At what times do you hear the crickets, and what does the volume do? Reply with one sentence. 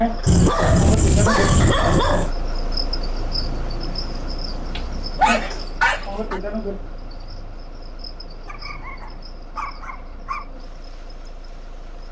The crickets can be heard from 0.0 to 12.0 s, getting quieter.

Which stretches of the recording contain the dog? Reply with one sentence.
You can hear the dog from 0.2 to 2.3 s, from 4.8 to 6.4 s and from 8.4 to 10.4 s.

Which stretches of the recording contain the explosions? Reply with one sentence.
The explosions can be heard from 1.3 to 1.9 s.